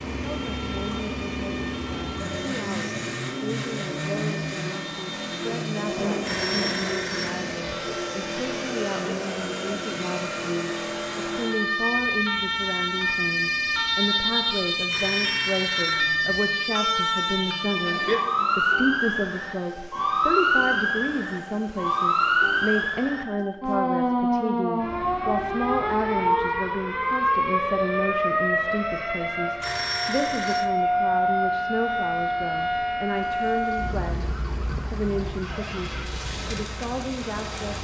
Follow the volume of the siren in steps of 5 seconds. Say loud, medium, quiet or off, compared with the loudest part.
quiet, quiet, loud, loud, loud, loud, loud, quiet.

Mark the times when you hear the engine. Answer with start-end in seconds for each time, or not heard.
0.0-23.1, 33.0-37.7.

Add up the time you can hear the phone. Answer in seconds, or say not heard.
4 s.